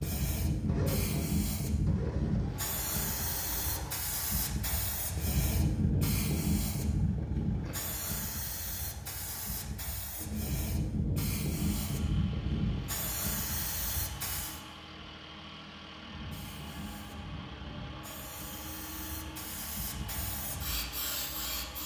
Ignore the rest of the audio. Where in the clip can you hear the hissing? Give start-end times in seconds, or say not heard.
0.0-14.6, 16.0-21.8.